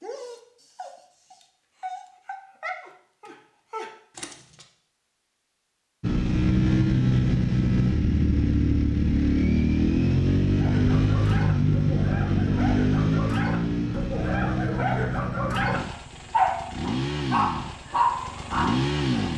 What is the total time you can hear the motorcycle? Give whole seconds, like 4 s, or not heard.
13 s.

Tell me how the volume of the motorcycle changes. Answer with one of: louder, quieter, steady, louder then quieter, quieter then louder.
quieter.